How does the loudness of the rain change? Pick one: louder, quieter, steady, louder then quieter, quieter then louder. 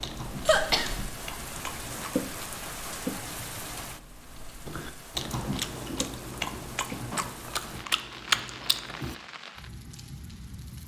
quieter.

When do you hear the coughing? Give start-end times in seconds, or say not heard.
0.5-1.1.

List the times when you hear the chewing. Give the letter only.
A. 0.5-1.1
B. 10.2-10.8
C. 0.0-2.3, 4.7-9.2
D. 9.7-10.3
C.